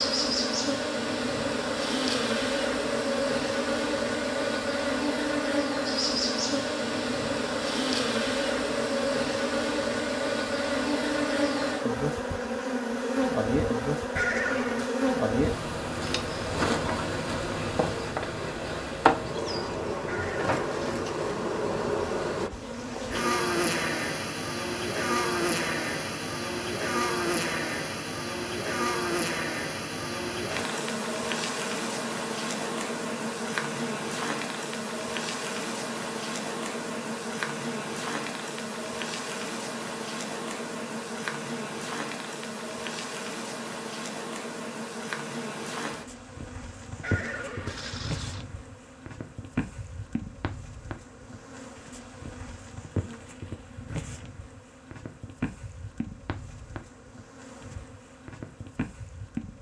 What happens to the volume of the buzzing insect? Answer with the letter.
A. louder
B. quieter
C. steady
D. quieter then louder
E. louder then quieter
B.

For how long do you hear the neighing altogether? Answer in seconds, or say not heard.
3 s.